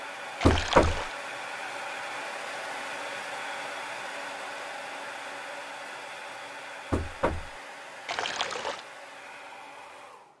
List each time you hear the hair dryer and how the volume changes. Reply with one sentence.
You can hear the hair dryer from 0.0 to 10.3 s, getting quieter.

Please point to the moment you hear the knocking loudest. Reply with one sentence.
The loudest moment of the knocking is at 1 second.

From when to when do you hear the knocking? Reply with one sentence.
You can hear the knocking from 0.5 to 1.1 s and from 6.9 to 7.5 s.